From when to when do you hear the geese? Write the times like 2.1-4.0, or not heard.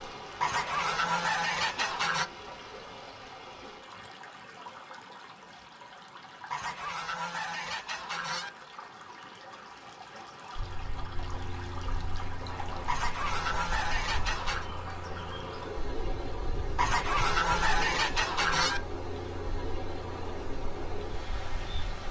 0.4-2.2, 6.5-8.5, 12.8-14.7, 16.8-18.8.